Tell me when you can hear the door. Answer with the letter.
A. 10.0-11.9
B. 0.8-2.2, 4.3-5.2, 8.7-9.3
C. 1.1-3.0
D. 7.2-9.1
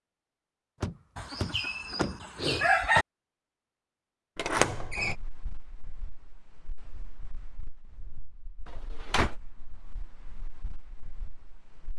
B.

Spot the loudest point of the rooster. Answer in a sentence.
The volume of the rooster peaks at 3 seconds.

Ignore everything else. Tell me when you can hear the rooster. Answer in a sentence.
You can hear the rooster from 1.1 to 3.0 s.